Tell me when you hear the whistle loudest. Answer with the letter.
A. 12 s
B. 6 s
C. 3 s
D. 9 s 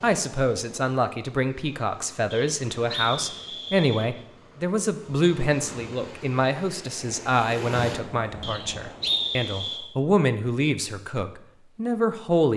D.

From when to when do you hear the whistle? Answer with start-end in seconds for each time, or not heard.
2.3-4.1, 8.4-9.8.